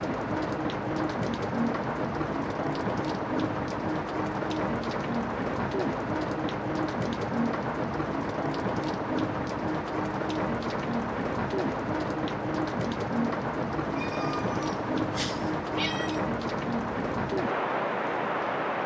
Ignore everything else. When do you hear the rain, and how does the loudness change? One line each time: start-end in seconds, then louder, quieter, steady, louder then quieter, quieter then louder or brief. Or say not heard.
0.0-18.8 steady.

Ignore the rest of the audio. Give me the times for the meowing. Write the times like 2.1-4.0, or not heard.
13.9-16.2.